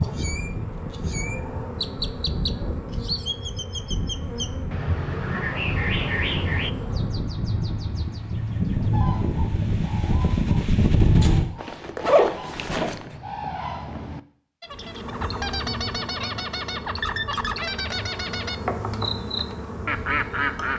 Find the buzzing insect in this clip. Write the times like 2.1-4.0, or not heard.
0.0-7.3, 14.7-20.7.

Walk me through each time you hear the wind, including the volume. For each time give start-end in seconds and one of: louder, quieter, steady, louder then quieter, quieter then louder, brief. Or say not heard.
0.0-11.5 louder.